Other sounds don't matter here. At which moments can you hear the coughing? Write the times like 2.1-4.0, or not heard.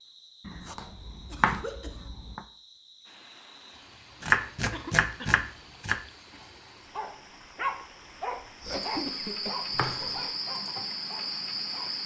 0.8-2.1, 4.7-5.3, 8.7-10.3.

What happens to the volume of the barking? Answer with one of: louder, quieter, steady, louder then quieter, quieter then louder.
quieter.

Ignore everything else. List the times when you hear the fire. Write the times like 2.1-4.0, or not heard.
not heard.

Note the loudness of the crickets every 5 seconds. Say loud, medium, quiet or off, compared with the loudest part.
quiet, medium, loud.